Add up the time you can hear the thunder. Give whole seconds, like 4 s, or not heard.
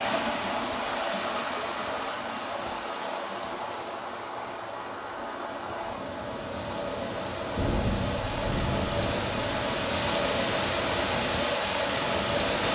2 s.